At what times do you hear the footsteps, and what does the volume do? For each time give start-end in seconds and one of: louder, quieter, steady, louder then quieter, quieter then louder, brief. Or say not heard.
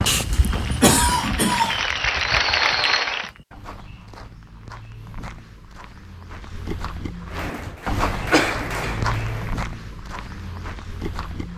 0.0-11.5 quieter then louder.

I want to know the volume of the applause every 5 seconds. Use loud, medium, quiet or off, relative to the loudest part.
loud, medium, off.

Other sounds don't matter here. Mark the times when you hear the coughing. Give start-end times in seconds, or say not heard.
0.1-1.8, 7.5-9.0.